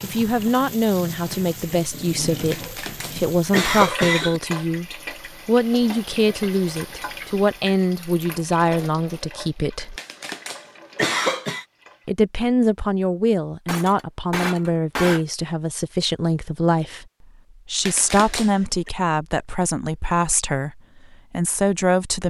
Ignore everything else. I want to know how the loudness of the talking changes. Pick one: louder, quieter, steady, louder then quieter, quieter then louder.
steady.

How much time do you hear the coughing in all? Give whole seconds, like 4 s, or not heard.
5 s.